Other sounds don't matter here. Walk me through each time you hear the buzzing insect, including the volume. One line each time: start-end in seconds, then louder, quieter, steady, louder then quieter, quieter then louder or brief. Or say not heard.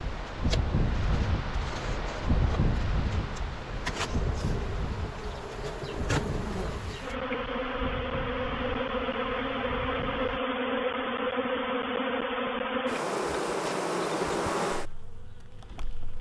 0.0-16.1 louder.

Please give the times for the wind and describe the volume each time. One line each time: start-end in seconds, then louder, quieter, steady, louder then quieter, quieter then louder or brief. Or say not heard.
0.0-10.4 quieter.